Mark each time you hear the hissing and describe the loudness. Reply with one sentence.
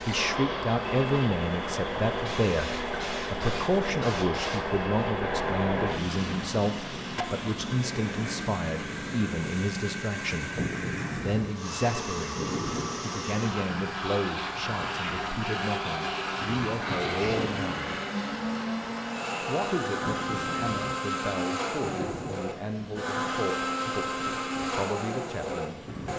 The hissing can be heard from 0.0 to 26.1 s, getting quieter.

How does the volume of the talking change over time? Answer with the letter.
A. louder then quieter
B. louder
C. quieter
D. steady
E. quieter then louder
C.